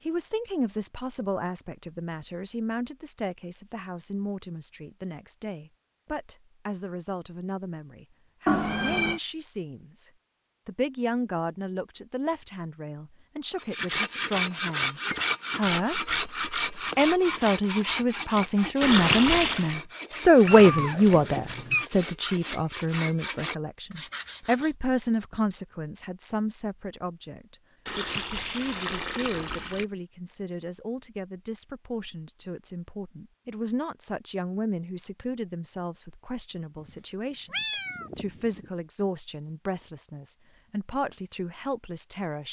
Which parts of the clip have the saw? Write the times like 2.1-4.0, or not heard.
13.6-24.8.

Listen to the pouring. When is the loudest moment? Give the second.
19 s.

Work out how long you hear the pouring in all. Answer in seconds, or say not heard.
3 s.